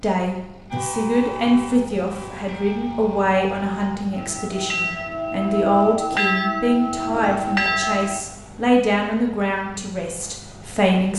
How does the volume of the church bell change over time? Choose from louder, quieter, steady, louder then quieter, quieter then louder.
louder.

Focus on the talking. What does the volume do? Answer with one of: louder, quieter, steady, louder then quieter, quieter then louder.
steady.